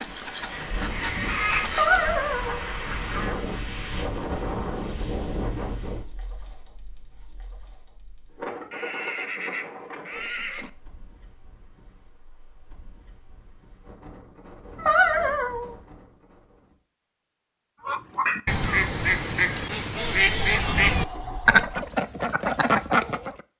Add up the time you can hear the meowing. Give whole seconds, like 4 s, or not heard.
2 s.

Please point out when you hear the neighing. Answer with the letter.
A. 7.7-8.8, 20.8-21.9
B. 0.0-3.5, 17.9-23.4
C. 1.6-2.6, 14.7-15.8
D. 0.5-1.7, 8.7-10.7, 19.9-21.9
D.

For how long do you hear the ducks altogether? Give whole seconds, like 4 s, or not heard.
9 s.